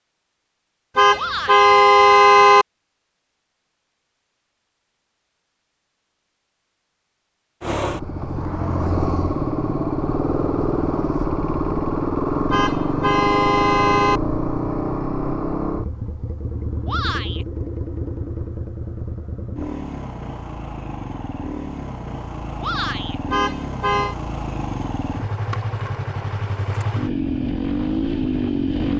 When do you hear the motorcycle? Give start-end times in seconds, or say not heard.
7.6-28.9.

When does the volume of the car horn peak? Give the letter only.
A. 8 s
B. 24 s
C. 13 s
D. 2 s
D.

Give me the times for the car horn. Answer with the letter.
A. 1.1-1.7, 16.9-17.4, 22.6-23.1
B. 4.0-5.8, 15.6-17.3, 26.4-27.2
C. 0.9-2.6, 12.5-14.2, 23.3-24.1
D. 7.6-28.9
C.